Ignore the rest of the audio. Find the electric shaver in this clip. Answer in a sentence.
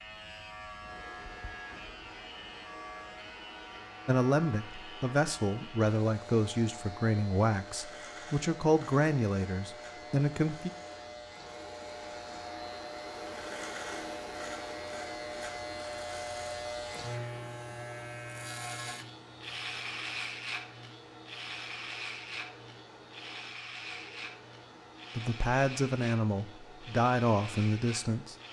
You can hear the electric shaver from 0.0 to 28.4 s.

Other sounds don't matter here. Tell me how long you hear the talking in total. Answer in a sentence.
You can hear the talking for 10 seconds altogether.